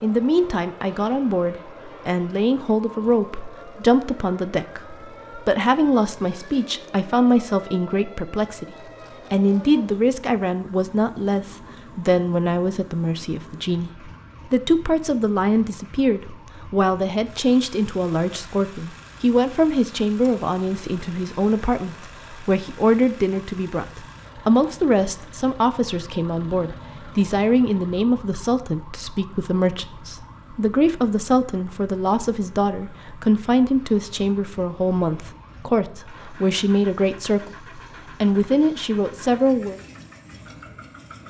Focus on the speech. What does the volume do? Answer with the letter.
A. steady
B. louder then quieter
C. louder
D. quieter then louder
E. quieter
A.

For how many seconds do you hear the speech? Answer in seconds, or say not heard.
40 s.